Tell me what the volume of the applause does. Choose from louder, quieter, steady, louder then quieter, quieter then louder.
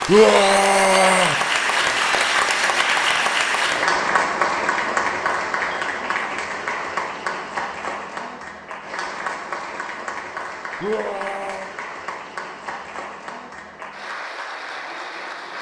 quieter.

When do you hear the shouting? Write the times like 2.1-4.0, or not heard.
0.1-1.4, 10.8-11.7.